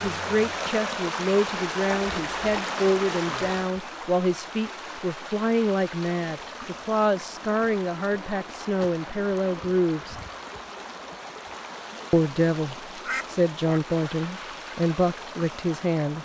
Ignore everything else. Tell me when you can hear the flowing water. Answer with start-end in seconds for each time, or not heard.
0.0-16.2.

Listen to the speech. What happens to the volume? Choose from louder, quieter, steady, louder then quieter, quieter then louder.
steady.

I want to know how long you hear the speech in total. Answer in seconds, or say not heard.
14 s.